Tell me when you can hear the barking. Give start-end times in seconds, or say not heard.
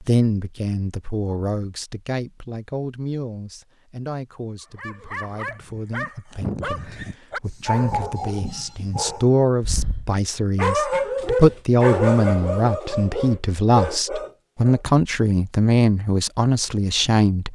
4.8-14.8.